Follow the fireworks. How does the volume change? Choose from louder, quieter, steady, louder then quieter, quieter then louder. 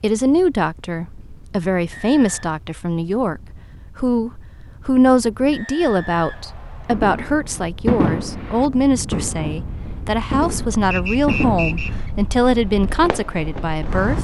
quieter.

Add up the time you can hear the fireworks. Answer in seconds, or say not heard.
7 s.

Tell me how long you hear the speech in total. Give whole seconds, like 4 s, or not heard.
14 s.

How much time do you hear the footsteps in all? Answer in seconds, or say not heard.
not heard.